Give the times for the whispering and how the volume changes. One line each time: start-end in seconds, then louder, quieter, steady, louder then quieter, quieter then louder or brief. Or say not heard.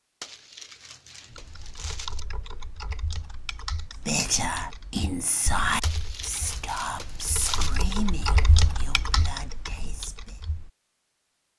4.0-10.4 quieter.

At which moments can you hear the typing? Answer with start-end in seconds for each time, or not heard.
1.3-10.7.